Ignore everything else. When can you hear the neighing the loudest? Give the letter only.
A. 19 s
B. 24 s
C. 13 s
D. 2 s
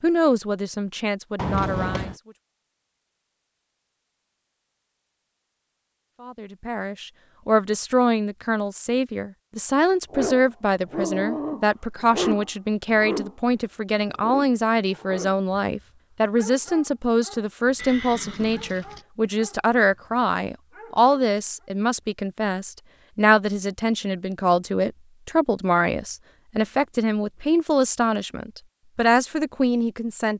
D.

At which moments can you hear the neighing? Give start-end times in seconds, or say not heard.
1.4-2.1, 17.8-19.1.